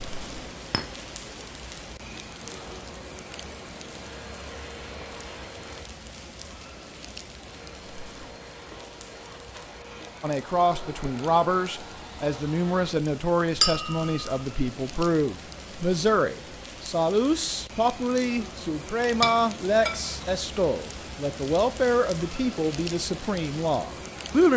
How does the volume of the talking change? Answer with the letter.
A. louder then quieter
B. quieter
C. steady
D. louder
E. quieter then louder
C.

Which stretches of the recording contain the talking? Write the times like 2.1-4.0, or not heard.
10.2-24.5.